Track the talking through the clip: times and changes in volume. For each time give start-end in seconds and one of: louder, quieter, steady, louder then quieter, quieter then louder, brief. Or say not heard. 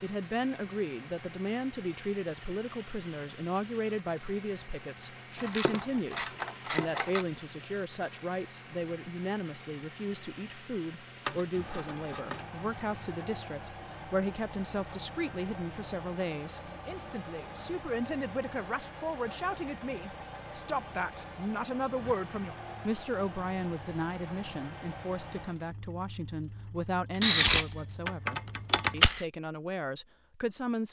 0.0-30.8 steady.